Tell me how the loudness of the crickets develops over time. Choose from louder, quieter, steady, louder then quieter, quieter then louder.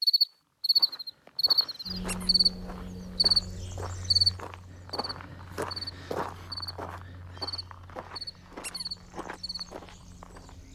quieter.